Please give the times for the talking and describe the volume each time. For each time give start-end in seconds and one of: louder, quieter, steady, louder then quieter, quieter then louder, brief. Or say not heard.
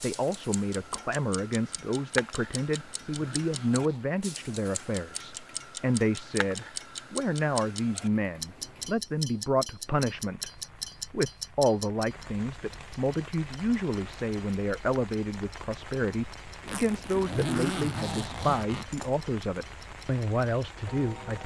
0.0-21.4 steady.